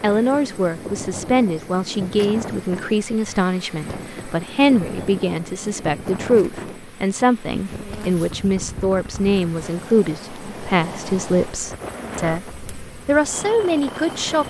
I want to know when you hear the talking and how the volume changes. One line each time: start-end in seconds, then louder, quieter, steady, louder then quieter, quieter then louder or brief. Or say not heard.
0.0-14.4 steady.